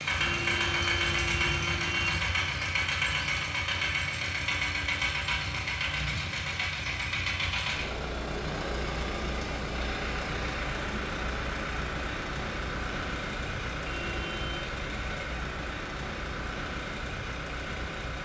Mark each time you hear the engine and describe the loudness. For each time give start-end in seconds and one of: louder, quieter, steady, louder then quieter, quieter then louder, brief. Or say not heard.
0.0-18.2 quieter.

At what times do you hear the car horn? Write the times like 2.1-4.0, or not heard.
0.2-2.2, 13.8-14.7.